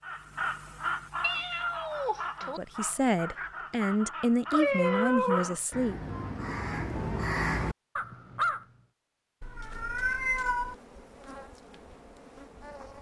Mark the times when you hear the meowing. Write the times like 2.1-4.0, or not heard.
1.2-2.6, 4.5-5.5, 9.4-10.8.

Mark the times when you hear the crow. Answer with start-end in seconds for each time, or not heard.
0.0-8.7.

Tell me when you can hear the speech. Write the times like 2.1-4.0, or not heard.
2.5-6.0.